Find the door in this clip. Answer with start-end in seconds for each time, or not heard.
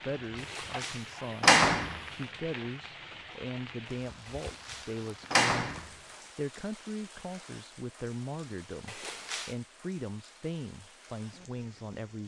0.6-2.0, 4.2-5.9, 8.8-9.6.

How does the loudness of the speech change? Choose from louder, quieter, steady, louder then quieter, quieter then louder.
steady.